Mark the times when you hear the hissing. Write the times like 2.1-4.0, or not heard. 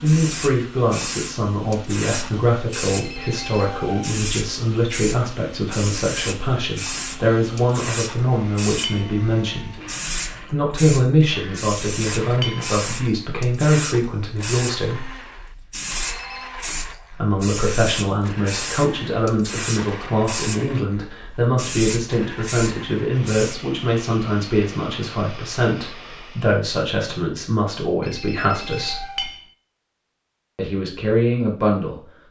0.0-23.6.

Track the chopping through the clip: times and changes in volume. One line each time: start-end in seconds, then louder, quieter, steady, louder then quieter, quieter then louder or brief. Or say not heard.
not heard.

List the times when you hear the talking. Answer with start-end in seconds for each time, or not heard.
0.0-9.8, 10.4-15.1, 17.1-29.1, 30.6-32.0.